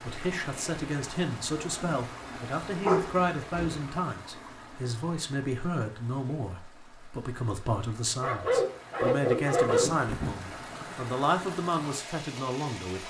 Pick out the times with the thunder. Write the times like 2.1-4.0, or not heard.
9.7-11.1.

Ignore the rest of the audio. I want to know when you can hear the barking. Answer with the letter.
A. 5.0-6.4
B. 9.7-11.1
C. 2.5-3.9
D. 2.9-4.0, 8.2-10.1
D.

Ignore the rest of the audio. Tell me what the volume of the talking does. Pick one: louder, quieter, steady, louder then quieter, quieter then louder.
steady.